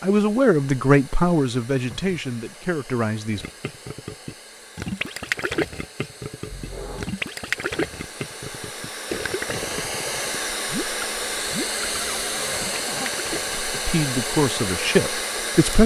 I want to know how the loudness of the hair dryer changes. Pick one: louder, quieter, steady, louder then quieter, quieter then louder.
louder.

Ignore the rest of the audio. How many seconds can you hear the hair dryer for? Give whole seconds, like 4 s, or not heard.
16 s.